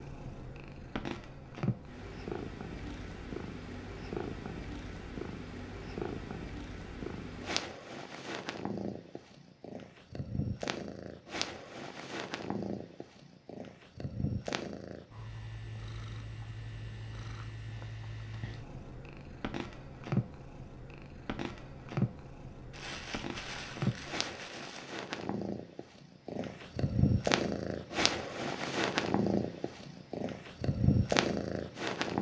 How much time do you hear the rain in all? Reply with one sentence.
You can't hear the rain here.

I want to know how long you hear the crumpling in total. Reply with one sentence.
You can hear the crumpling for 2 seconds altogether.